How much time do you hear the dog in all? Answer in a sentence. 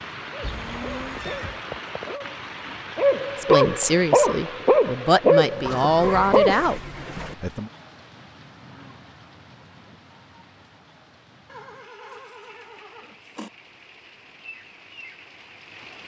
You can hear the dog for 6 seconds altogether.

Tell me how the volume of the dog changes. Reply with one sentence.
The volume of the dog goes up.